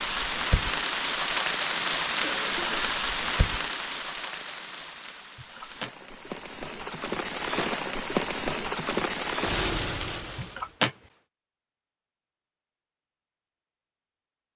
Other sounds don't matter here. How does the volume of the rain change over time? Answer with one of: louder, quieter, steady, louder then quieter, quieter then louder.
quieter then louder.